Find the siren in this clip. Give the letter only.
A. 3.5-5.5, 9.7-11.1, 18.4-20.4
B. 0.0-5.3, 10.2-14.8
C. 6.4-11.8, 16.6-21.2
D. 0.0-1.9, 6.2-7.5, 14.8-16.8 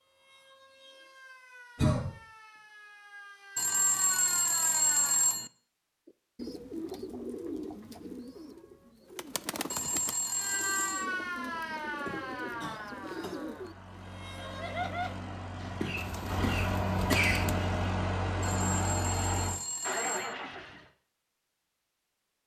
B.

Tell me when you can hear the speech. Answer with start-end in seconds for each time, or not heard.
not heard.